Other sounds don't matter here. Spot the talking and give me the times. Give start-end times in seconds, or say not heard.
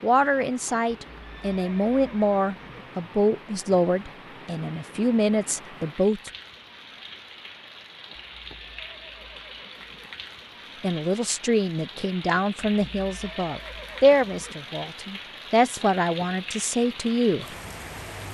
0.0-6.3, 10.8-17.4.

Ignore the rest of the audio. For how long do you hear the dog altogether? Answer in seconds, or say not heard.
not heard.